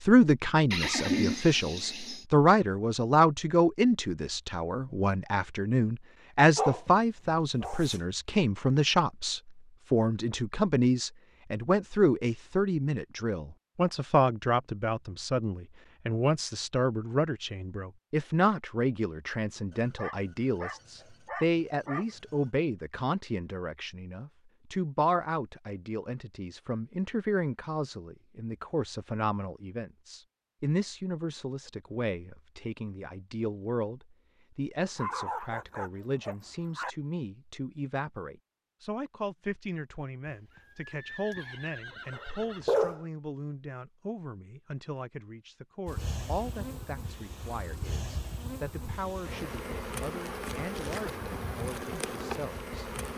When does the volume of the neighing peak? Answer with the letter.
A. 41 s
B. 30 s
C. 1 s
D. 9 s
C.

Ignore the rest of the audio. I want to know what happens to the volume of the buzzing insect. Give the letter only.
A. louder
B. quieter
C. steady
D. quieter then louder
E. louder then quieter
A.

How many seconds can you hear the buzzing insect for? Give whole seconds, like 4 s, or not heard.
7 s.